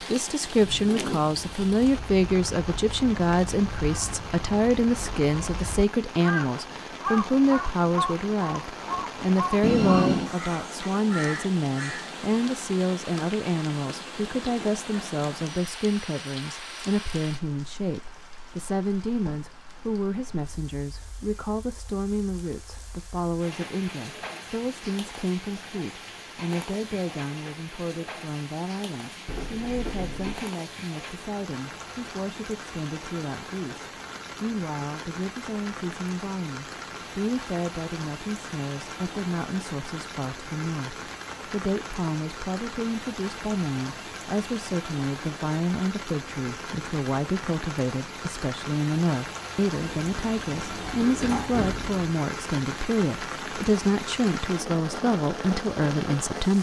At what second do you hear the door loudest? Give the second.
10 s.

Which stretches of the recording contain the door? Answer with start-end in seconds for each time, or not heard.
9.6-10.3, 29.2-30.4, 49.8-52.0.